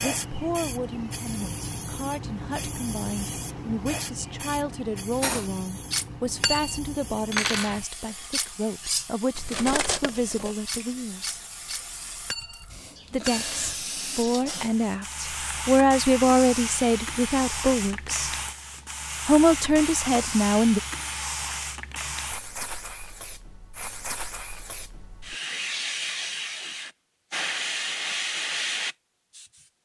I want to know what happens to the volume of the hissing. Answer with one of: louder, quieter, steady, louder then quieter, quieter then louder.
quieter then louder.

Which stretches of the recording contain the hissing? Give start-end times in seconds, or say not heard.
0.0-29.6.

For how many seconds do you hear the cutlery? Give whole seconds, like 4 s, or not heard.
9 s.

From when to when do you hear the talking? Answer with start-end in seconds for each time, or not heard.
0.0-11.4, 13.1-18.3, 19.2-20.8.